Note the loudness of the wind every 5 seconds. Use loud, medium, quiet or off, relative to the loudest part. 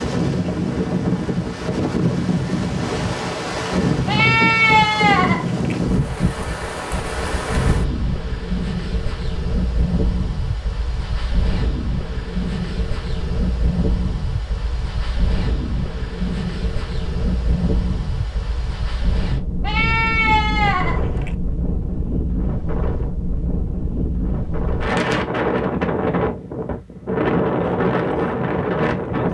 loud, loud, medium, medium, medium, loud.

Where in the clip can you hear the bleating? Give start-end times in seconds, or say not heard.
4.0-5.8, 19.6-21.4.